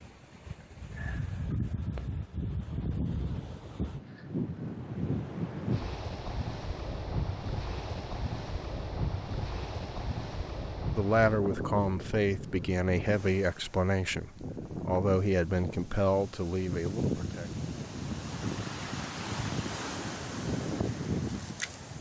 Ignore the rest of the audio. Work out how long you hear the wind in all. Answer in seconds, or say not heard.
22 s.